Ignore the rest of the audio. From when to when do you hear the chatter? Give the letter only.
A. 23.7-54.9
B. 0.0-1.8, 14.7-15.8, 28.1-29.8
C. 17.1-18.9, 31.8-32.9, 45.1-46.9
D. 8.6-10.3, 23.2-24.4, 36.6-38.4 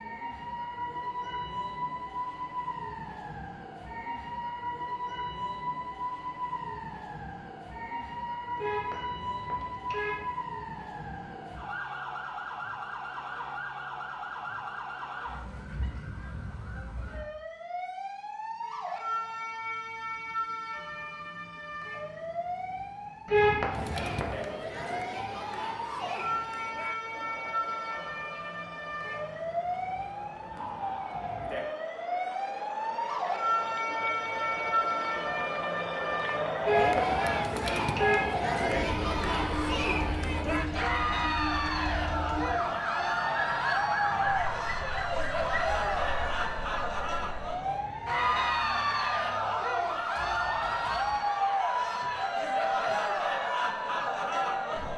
A.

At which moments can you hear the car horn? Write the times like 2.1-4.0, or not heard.
8.6-10.3, 23.2-24.4, 36.6-38.4.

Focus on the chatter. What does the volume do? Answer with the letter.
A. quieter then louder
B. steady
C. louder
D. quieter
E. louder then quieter
C.